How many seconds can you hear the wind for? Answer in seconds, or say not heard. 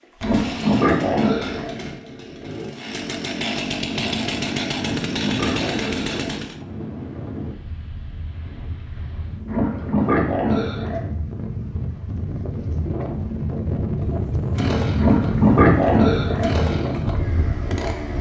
14 s.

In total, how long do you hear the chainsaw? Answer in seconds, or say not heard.
11 s.